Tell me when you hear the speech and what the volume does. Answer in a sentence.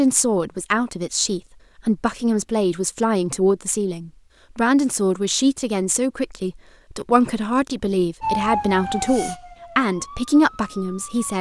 The speech can be heard from 0.0 to 11.3 s, at a steady volume.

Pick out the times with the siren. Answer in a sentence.
The siren can be heard from 8.2 to 11.3 s.